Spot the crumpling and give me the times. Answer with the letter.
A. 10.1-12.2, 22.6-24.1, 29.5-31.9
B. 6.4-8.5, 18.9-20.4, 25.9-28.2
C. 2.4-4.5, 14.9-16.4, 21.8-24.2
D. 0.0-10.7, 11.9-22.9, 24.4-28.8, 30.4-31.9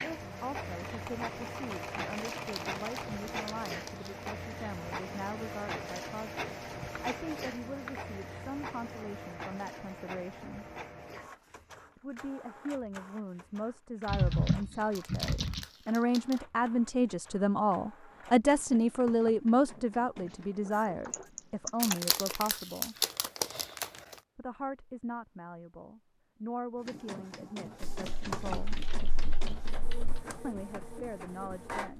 C.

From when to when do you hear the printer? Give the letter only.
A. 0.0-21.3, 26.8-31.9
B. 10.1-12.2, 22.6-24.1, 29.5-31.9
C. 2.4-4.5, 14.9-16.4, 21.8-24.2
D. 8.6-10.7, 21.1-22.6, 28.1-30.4
A.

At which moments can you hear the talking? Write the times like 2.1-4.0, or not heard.
0.0-10.7, 11.9-22.9, 24.4-28.8, 30.4-31.9.